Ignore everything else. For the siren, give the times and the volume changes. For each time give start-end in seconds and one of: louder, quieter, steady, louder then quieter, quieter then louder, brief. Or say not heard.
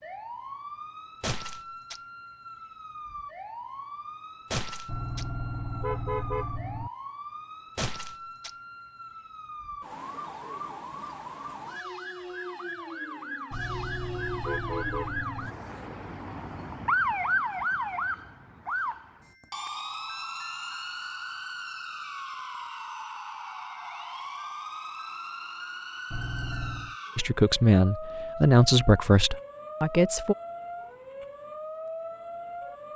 0.0-32.9 louder then quieter.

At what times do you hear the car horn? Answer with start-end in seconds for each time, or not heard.
4.8-6.9, 13.5-15.5, 26.1-26.9.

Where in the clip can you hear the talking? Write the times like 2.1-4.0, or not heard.
27.1-30.4.